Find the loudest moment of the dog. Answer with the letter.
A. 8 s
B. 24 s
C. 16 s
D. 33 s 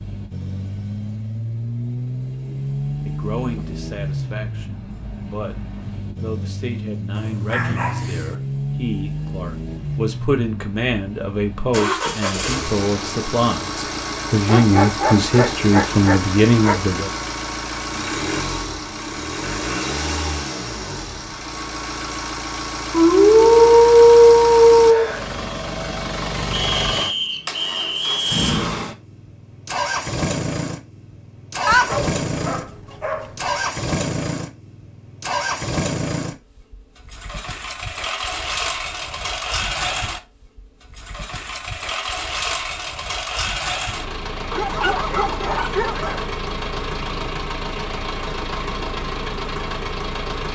B.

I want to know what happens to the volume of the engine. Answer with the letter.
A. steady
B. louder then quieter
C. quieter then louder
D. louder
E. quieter
A.